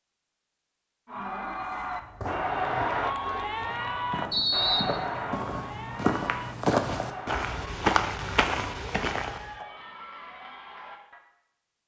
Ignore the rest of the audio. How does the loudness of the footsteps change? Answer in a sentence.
The volume of the footsteps goes up.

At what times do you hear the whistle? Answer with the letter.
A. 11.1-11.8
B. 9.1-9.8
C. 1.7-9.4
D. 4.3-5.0
D.